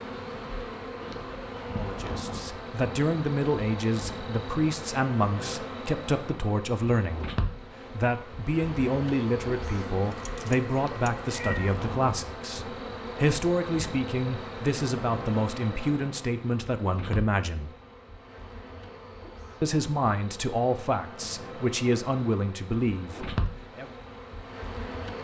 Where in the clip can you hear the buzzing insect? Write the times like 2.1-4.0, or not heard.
0.0-25.2.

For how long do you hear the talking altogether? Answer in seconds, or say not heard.
20 s.